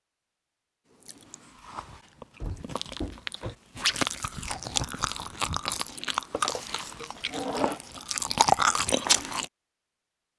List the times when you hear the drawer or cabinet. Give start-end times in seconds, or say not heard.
2.4-3.5, 6.3-7.8.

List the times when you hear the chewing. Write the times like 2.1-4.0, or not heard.
1.1-9.4.